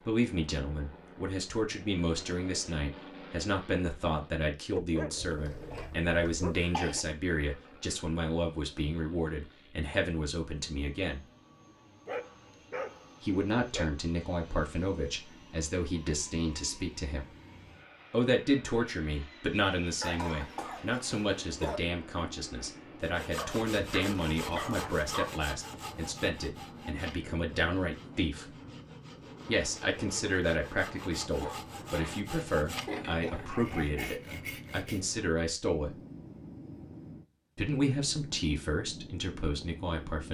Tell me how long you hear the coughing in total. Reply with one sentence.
The coughing can be heard for 6 seconds in total.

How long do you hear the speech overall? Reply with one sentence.
The speech can be heard for 35 seconds in total.